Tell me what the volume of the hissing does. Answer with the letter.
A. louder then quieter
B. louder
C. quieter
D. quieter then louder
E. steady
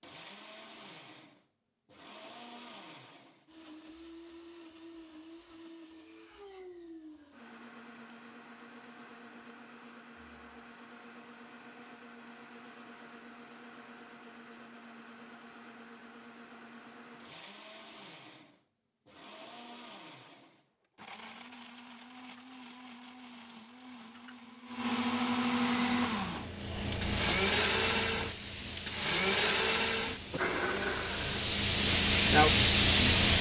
B.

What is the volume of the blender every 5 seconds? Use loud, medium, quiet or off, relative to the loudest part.
quiet, quiet, quiet, quiet, quiet, loud, medium.